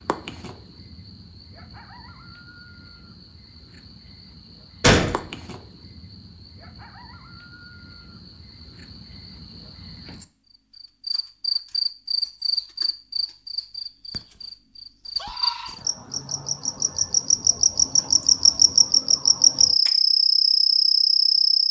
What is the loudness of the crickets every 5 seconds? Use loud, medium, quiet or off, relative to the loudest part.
quiet, quiet, medium, loud, loud.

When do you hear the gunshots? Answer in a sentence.
The gunshots can be heard from 4.8 to 5.2 s.